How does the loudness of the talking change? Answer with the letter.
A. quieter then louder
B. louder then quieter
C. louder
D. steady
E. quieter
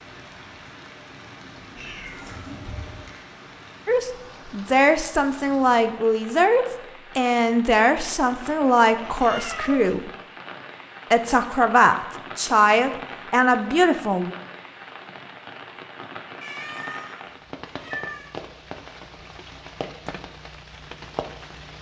D.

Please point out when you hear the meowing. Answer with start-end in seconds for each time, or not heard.
1.8-3.0, 9.0-9.9, 16.4-18.4.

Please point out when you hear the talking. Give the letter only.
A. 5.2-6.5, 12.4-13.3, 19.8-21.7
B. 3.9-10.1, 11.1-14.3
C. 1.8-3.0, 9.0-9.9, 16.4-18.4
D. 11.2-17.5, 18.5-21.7
B.